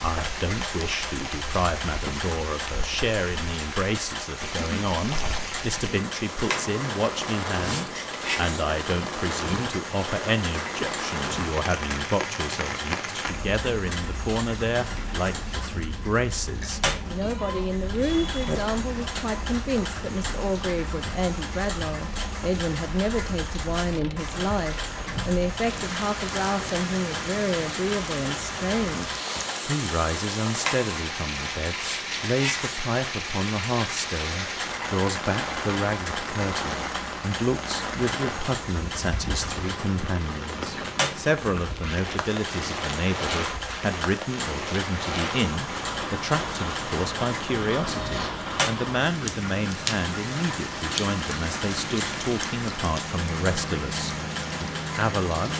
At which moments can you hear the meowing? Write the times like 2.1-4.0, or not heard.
16.9-18.6, 47.6-48.3.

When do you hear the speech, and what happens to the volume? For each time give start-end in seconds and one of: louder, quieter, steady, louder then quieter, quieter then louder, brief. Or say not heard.
0.0-55.5 steady.